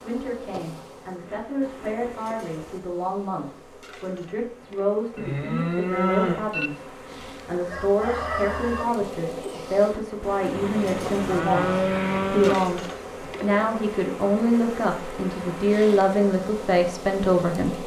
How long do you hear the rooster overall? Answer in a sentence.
You can hear the rooster for 2 seconds altogether.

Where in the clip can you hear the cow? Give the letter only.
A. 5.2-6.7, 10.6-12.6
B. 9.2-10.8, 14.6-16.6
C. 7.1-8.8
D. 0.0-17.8
A.